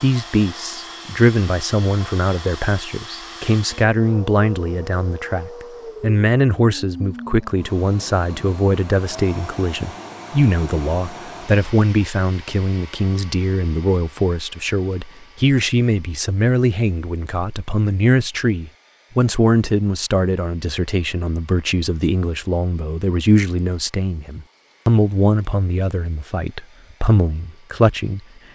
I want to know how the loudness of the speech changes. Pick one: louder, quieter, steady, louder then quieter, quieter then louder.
steady.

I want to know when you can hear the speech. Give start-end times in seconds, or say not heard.
0.0-28.2.